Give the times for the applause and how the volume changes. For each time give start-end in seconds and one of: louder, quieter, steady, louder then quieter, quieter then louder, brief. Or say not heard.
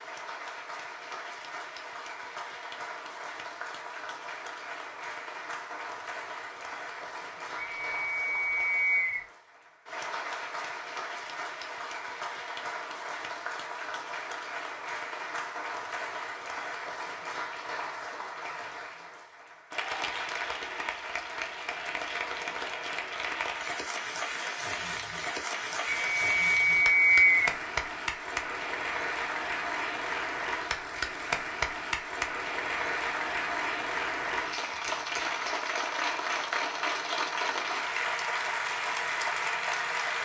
0.0-40.2 louder.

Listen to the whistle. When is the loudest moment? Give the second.
27 s.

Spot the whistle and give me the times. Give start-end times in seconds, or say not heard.
7.5-9.2, 25.9-27.6.